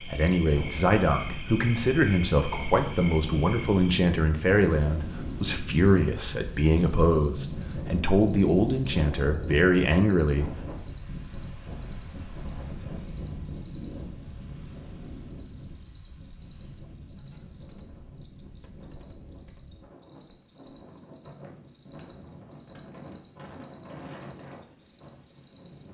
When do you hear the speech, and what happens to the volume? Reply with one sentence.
The speech can be heard from 0.0 to 10.6 s, at a steady volume.